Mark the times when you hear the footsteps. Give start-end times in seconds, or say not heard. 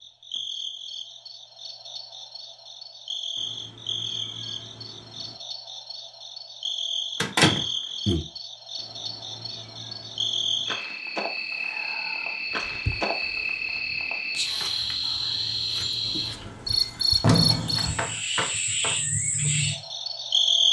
not heard.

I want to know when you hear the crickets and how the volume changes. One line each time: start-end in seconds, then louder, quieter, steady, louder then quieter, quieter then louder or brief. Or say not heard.
0.0-20.6 louder.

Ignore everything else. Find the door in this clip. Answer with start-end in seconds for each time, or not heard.
7.2-8.2, 16.1-18.1.